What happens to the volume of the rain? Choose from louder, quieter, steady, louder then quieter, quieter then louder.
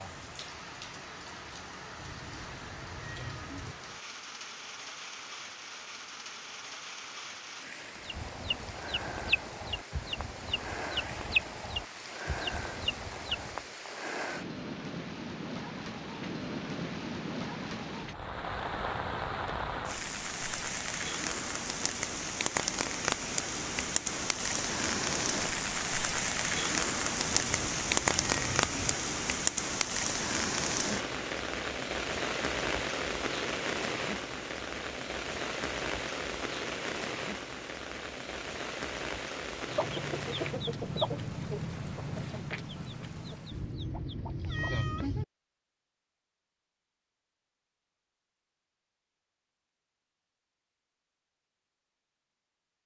louder then quieter.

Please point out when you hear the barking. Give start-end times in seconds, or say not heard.
not heard.